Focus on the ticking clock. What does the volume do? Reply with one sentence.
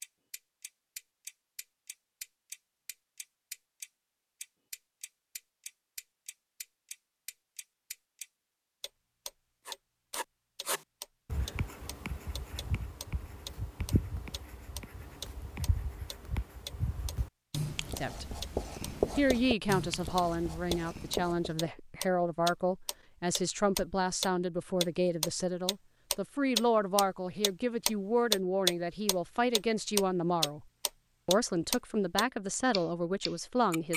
The volume of the ticking clock goes up.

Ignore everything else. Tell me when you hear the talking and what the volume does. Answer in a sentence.
The talking can be heard briefly from 17.9 to 18.4 s; from 19.1 to 30.6 s, at a steady volume; and briefly from 31.2 to 33.9 s.